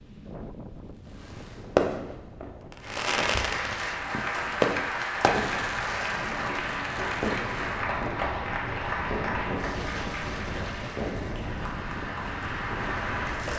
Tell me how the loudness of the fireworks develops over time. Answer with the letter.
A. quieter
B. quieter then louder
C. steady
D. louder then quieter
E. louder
A.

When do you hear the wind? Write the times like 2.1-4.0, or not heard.
0.0-13.5.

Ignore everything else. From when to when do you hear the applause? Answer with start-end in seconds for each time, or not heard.
2.8-13.5.